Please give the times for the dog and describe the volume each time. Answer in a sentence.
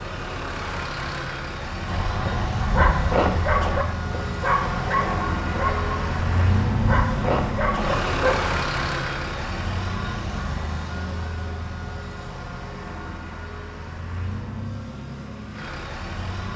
The dog can be heard from 1.9 to 8.4 s, getting quieter then louder.